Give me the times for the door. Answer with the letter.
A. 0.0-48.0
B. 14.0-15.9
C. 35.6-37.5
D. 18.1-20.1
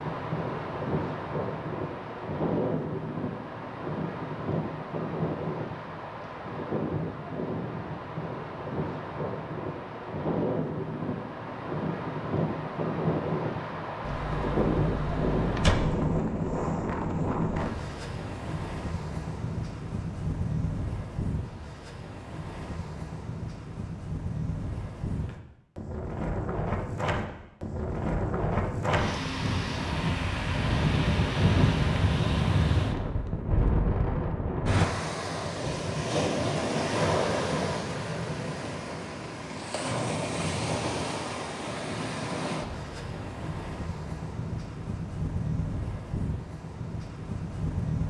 B.